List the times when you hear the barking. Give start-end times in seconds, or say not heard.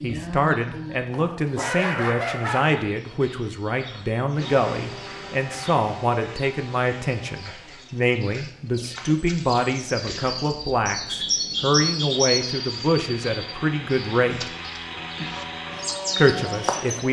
1.1-2.9.